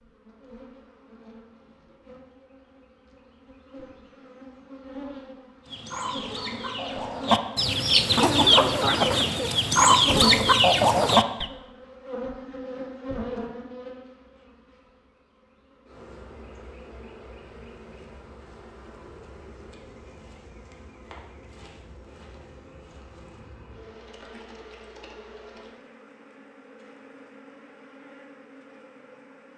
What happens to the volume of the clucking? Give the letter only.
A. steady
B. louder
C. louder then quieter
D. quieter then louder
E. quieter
B.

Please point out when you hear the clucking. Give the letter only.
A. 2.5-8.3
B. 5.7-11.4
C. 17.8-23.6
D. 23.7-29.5
B.